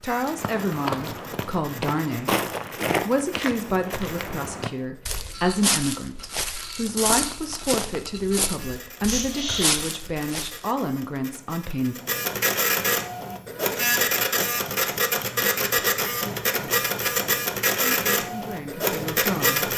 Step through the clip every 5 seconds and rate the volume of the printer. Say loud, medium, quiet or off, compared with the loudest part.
quiet, quiet, loud, loud.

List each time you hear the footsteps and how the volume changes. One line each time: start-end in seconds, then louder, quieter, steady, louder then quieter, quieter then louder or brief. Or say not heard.
0.2-10.6 steady.